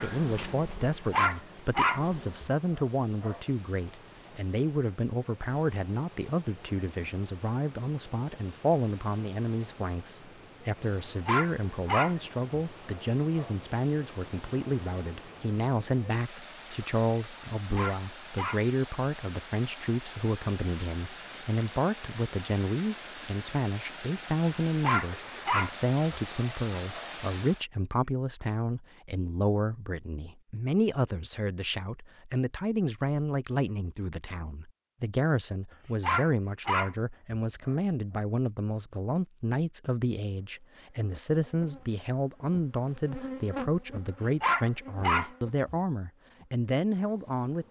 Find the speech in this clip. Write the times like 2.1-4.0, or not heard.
0.0-47.6.